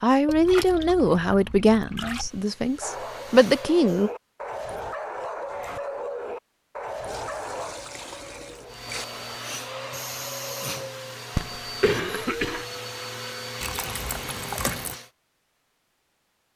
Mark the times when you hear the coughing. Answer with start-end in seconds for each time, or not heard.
11.3-12.7.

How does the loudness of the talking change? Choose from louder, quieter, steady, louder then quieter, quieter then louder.
quieter then louder.